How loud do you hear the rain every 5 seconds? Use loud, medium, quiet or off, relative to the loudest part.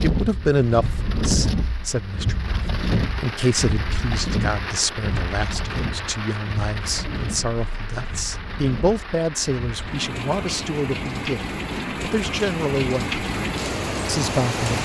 loud, medium, loud.